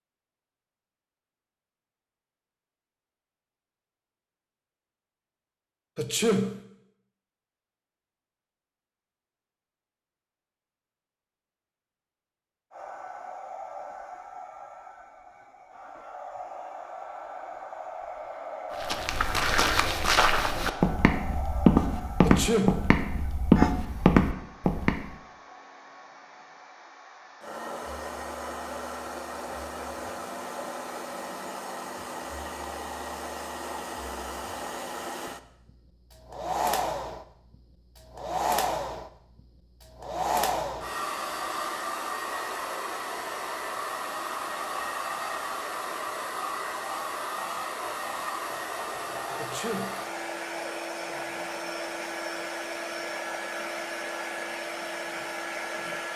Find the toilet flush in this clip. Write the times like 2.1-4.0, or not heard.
not heard.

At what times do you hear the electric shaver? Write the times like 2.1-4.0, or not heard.
not heard.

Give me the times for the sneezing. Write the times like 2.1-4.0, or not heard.
6.0-6.6, 22.2-22.9, 49.4-50.0.